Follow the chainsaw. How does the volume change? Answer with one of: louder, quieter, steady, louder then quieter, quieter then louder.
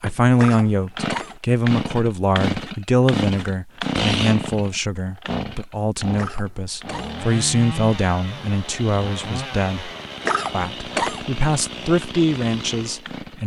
quieter.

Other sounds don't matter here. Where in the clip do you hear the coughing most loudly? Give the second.
11 s.